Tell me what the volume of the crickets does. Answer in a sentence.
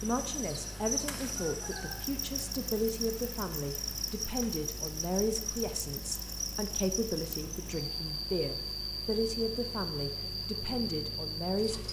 The loudness of the crickets stays about the same.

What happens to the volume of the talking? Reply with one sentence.
The volume of the talking stays about the same.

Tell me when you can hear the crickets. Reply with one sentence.
You can hear the crickets from 0.0 to 11.8 s.